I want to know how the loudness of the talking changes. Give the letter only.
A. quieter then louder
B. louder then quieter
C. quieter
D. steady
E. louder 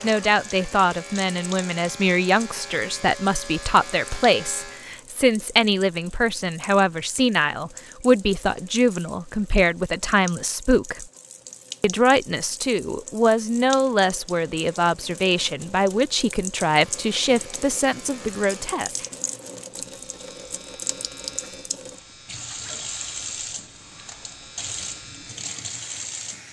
D.